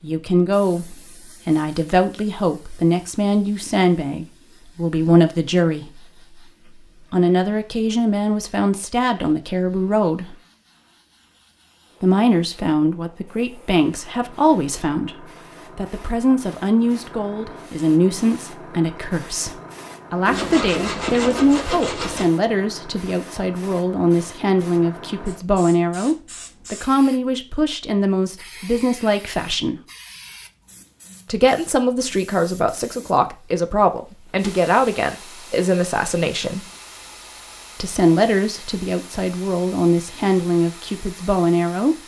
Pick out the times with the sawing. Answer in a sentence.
The sawing can be heard from 20.2 to 22.2 s.